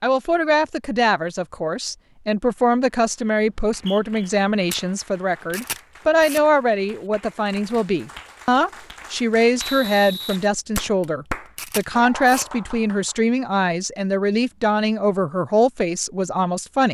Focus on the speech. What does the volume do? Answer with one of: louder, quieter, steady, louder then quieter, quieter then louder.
steady.